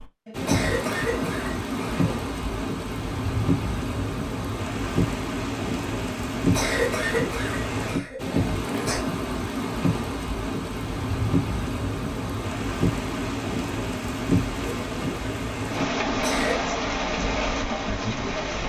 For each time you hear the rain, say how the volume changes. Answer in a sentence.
You can hear the rain from 0.0 to 18.6 s, at a steady volume.